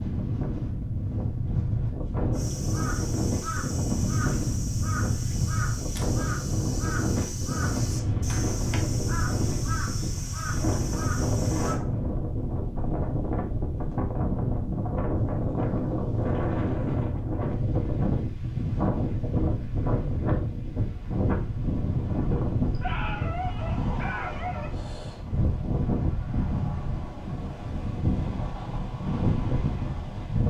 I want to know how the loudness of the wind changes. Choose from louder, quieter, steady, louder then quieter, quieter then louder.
steady.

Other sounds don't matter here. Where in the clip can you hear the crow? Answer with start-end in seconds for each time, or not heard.
2.3-11.8.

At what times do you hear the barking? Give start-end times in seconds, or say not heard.
22.7-24.7.